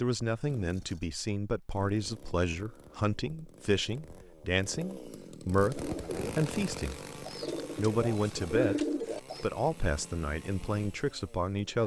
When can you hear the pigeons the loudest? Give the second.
9 s.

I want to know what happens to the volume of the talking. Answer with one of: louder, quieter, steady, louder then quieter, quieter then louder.
steady.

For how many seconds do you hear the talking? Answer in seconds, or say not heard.
11 s.